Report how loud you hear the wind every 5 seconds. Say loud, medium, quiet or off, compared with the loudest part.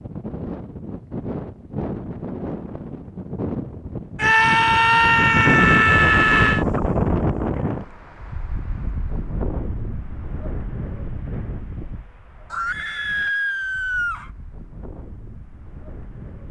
medium, loud, quiet, quiet.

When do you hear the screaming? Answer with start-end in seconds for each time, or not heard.
4.2-6.7, 12.5-14.3.